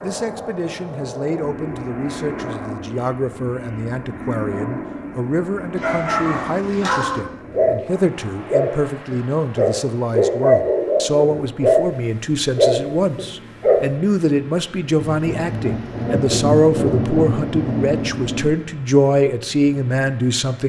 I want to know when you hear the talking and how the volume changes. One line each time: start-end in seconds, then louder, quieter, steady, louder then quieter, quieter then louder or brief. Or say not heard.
0.0-20.6 louder.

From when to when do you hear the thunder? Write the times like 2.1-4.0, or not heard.
14.9-18.5.